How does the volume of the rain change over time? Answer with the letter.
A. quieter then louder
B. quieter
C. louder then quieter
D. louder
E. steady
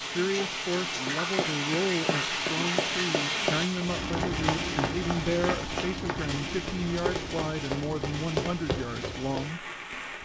B.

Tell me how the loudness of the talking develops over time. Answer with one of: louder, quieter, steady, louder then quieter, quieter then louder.
steady.